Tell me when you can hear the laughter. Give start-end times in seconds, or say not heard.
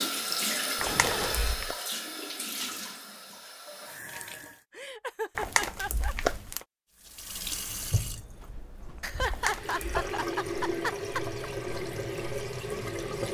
0.8-1.4, 4.7-6.2, 9.0-11.2.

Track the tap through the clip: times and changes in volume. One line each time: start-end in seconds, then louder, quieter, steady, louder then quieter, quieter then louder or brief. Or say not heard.
0.0-4.6 quieter
7.0-13.2 quieter then louder.